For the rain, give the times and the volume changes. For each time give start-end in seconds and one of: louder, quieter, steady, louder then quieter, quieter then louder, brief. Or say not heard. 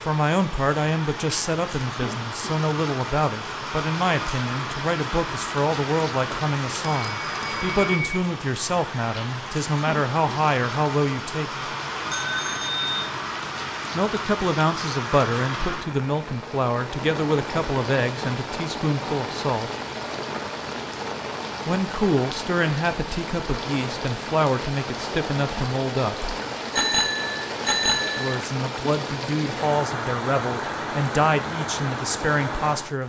0.0-33.0 steady.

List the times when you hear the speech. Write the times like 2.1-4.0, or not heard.
0.0-11.7, 13.9-19.7, 21.6-26.4, 28.1-33.0.